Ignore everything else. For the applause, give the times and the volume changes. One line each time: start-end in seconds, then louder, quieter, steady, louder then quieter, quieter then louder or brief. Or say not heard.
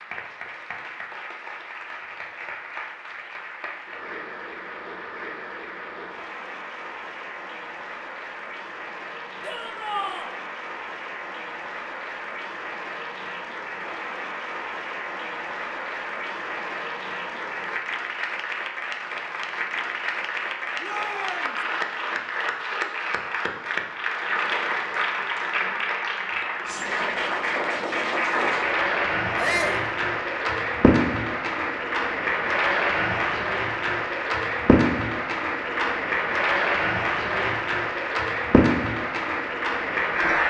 0.0-40.4 louder.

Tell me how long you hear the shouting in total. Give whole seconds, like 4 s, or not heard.
2 s.